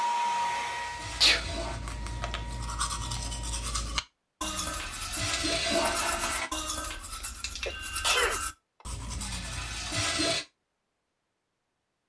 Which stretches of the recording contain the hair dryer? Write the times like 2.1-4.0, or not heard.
0.0-3.5.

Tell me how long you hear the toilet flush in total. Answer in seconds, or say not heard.
5 s.